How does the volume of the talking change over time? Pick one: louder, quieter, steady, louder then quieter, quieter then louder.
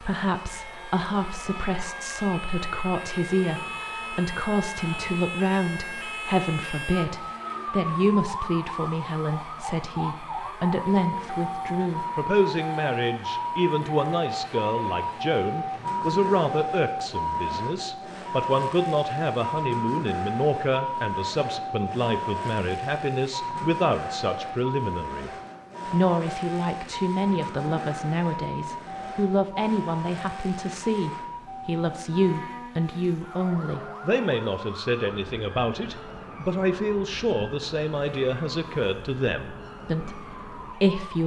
steady.